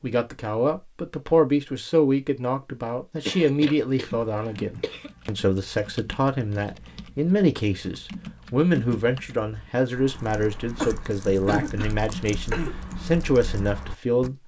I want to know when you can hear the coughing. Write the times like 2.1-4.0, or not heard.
3.2-5.1, 10.8-12.8.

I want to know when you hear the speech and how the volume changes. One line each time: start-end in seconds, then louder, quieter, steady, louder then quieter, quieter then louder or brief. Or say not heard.
0.0-14.3 steady.